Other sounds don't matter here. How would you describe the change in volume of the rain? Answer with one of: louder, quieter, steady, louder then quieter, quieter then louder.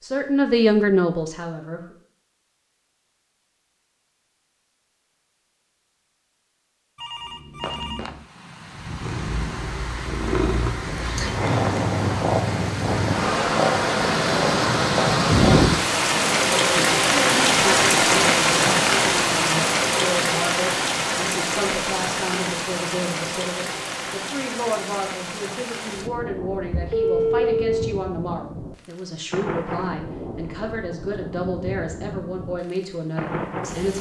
louder then quieter.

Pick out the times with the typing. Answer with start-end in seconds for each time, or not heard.
not heard.